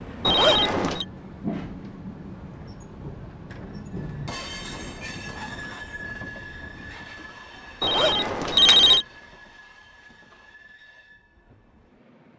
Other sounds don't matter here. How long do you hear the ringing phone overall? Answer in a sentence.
The ringing phone can be heard for 2 seconds in total.